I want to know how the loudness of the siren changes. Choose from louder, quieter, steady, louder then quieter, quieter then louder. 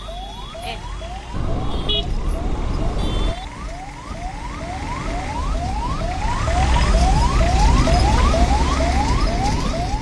louder.